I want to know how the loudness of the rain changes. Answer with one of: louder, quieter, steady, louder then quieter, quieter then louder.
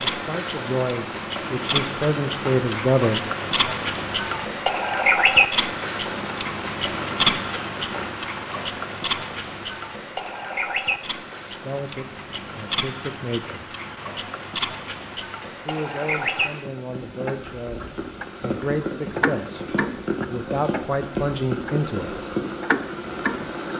quieter then louder.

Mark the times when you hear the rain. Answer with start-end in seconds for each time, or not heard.
0.0-23.7.